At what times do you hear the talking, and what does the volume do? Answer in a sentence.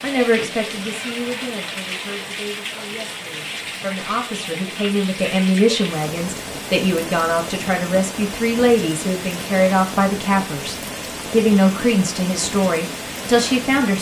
The talking can be heard from 0.0 to 13.9 s, getting louder.